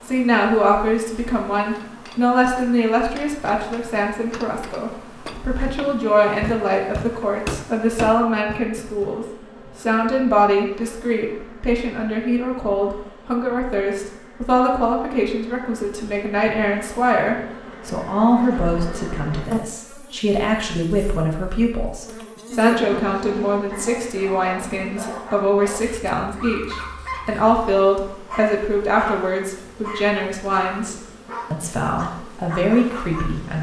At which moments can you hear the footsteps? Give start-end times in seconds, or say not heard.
not heard.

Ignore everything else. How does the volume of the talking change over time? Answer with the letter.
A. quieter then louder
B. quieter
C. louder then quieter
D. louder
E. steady
E.